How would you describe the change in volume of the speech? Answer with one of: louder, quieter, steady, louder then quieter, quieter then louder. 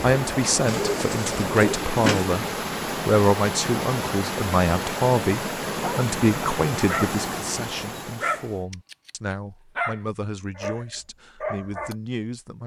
quieter.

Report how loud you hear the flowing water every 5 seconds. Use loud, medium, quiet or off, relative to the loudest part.
loud, loud, off.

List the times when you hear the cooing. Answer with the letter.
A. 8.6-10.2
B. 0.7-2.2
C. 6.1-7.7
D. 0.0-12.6
B.